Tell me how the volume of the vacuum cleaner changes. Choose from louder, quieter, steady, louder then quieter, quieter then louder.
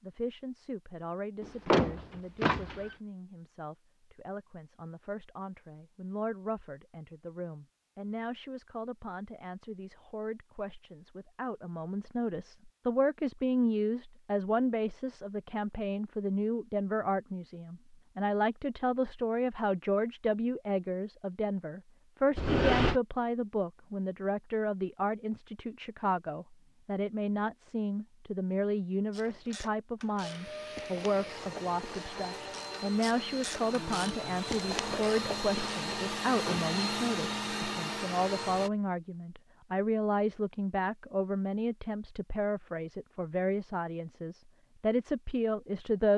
louder.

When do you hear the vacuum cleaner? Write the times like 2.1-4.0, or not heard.
30.2-38.7.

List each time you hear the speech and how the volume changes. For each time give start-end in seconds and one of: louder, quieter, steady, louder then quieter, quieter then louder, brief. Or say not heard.
0.0-46.1 louder.